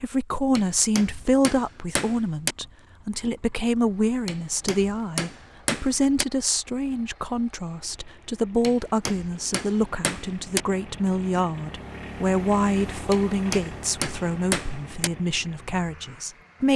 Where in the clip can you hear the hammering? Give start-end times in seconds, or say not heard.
0.6-2.5, 4.2-6.2, 8.6-10.6, 13.1-15.1.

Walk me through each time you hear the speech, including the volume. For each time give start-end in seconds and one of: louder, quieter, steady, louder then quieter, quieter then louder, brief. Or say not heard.
0.0-16.7 steady.